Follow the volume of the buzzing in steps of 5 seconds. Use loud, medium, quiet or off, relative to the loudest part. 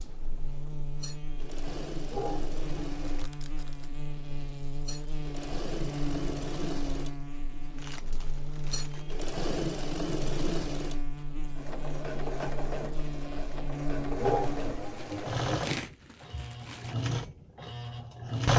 loud, loud, loud, off.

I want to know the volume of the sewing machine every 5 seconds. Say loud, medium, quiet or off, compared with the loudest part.
quiet, medium, medium, loud.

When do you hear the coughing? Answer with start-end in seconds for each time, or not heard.
2.1-3.3, 14.2-15.7.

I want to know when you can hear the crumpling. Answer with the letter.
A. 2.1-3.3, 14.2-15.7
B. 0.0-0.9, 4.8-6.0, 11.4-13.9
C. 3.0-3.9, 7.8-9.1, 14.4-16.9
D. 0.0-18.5
C.